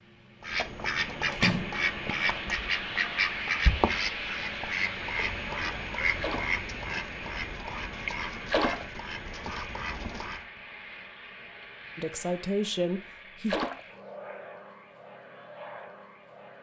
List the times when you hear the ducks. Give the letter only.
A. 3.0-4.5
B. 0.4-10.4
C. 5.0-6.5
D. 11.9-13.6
B.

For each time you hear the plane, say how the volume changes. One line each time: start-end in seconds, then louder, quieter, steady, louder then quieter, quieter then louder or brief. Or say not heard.
0.0-16.5 quieter.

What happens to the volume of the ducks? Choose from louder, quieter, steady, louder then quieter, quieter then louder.
quieter.